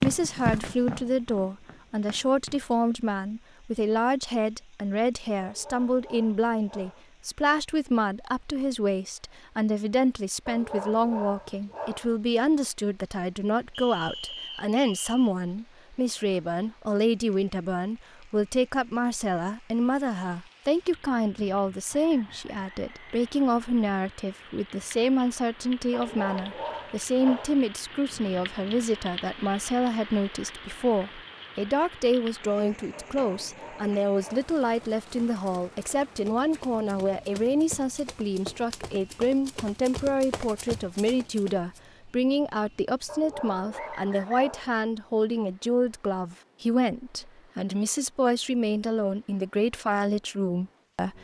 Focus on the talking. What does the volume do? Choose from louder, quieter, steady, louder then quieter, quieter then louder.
steady.